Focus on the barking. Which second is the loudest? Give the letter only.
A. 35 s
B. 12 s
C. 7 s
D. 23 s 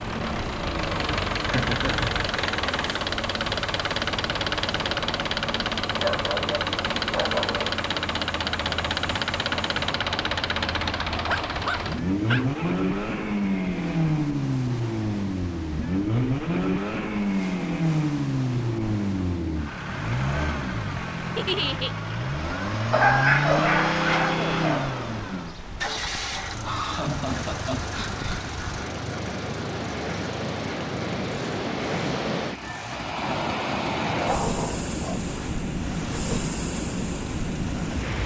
D.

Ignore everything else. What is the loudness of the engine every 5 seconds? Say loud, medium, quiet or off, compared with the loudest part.
loud, loud, loud, loud, loud, medium, quiet, quiet.